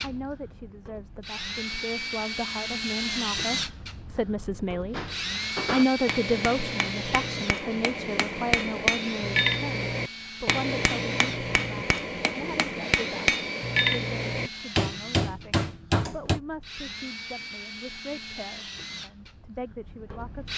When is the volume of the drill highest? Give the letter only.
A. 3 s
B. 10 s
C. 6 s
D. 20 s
A.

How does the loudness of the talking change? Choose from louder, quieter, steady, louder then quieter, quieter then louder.
louder then quieter.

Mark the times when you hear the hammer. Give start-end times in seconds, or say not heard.
4.9-16.4.